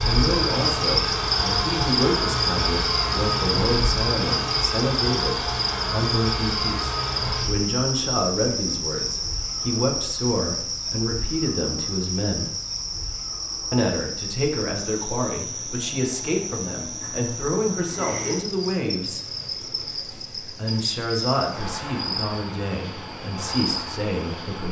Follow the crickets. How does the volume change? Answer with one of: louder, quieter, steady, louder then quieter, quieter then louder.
quieter.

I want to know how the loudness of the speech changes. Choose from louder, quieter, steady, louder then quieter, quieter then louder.
steady.